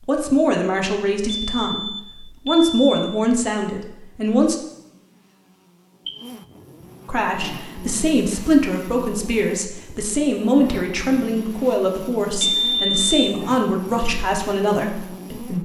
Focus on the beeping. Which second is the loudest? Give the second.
13 s.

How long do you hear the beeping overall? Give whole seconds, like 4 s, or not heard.
3 s.